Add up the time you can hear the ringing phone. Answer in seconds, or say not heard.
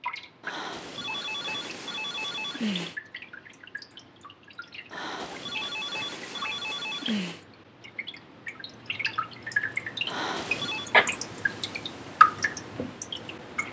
6 s.